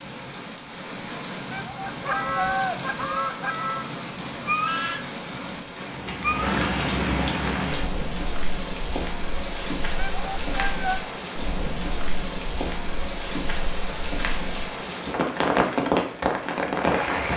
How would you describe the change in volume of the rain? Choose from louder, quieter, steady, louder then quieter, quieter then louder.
louder.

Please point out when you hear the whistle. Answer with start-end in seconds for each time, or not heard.
not heard.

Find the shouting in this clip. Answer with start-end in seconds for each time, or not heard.
1.5-2.8, 9.9-11.0.